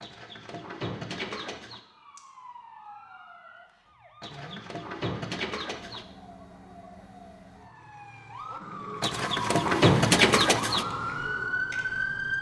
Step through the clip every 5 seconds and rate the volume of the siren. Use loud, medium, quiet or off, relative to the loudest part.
quiet, medium, loud.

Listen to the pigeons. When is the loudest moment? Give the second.
10 s.